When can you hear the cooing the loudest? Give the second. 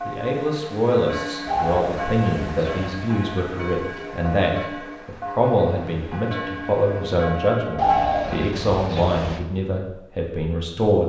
8 s.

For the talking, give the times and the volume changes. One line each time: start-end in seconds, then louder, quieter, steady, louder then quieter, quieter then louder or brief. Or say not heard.
0.1-11.0 steady.